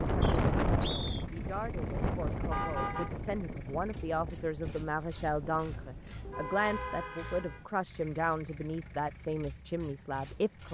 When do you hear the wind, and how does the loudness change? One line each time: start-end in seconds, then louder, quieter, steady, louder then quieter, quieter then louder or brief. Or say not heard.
0.0-6.5 quieter.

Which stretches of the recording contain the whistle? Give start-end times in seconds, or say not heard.
0.2-1.2.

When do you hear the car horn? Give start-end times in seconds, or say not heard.
2.5-3.1, 6.2-7.7.